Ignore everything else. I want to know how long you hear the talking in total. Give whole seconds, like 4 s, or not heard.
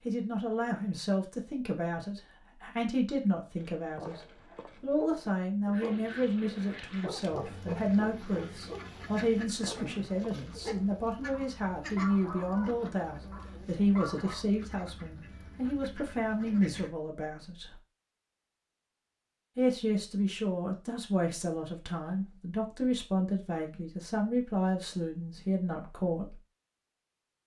24 s.